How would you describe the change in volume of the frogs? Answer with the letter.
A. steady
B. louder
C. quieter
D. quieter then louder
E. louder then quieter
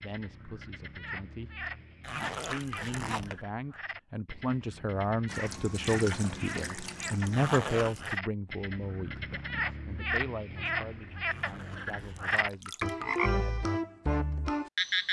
B.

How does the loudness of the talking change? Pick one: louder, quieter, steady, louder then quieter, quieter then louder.
louder then quieter.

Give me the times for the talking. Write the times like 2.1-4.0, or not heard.
0.0-13.7.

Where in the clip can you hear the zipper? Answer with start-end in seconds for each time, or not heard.
2.0-3.5, 7.3-8.2, 11.2-12.7.